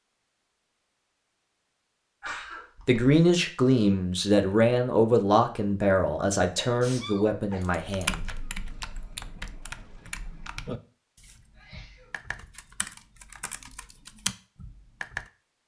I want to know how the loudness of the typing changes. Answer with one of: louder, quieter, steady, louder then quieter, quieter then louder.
quieter then louder.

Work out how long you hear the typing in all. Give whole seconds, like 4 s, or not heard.
8 s.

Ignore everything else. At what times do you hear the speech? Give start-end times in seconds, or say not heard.
2.9-8.2.